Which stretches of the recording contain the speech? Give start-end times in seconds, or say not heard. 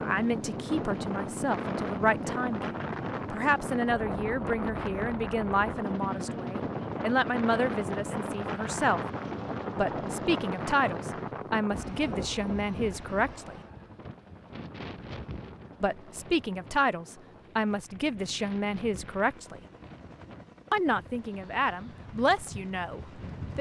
0.0-9.0, 9.8-13.6, 15.8-19.6, 20.7-23.5.